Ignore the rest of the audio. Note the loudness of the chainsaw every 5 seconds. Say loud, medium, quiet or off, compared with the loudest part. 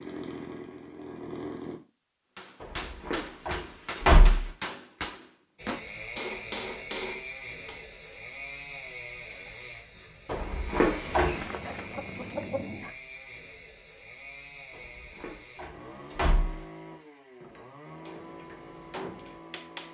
loud, loud, medium, medium.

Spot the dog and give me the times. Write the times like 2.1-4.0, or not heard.
not heard.